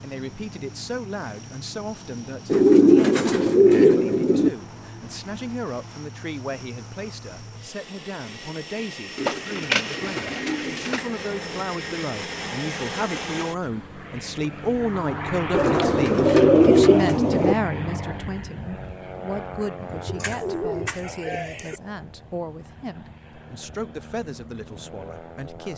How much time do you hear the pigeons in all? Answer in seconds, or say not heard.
8 s.